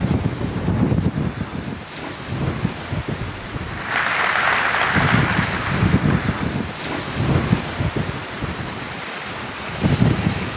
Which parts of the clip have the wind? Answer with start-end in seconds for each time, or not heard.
0.0-10.5.